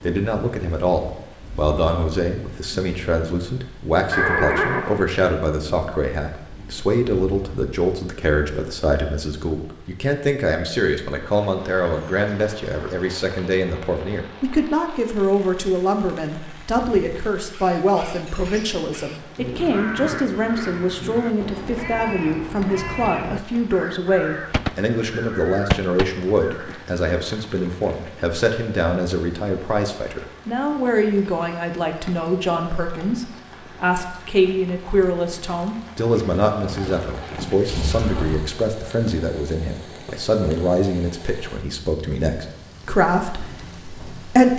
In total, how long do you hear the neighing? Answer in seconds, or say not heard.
5 s.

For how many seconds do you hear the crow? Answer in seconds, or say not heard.
10 s.